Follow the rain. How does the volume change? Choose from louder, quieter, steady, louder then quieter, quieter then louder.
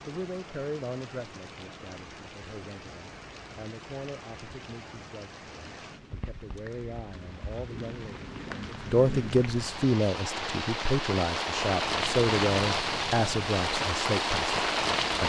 louder.